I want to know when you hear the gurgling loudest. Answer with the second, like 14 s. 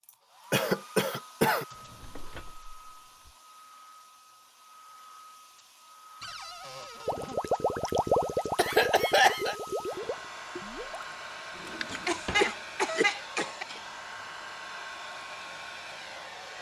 8 s.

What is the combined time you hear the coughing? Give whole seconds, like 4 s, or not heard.
4 s.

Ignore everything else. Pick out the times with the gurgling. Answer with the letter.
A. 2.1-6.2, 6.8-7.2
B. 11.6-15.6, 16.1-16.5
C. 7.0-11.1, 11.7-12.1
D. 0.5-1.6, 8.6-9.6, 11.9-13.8
C.